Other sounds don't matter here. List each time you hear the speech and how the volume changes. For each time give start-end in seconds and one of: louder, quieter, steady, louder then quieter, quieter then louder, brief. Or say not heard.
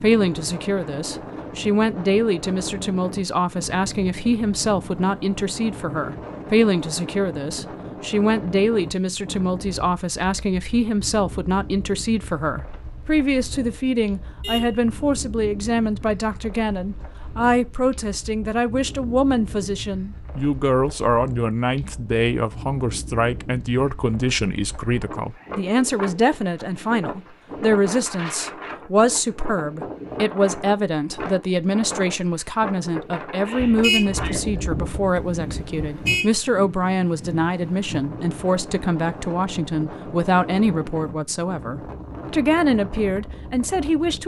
0.0-44.2 steady.